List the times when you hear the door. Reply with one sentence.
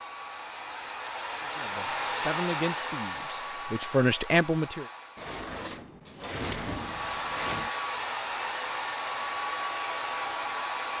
The door can be heard from 5.2 to 7.7 s.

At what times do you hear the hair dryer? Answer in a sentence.
You can hear the hair dryer from 0.0 to 5.3 s and from 6.5 to 10.9 s.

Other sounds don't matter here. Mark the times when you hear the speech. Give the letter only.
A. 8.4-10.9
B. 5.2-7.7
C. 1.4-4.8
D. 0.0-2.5
C.